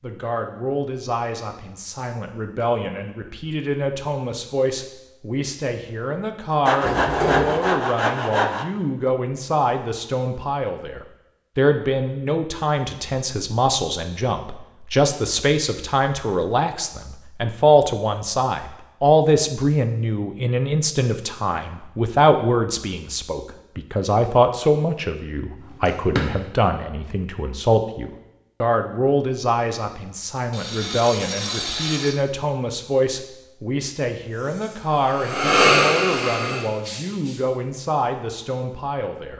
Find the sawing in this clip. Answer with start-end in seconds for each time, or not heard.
6.7-8.7, 30.5-32.2.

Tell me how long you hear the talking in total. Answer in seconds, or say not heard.
39 s.